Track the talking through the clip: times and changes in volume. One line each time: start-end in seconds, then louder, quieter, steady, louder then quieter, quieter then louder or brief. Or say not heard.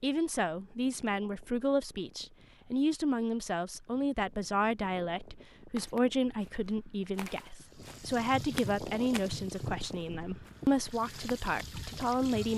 0.0-12.5 steady.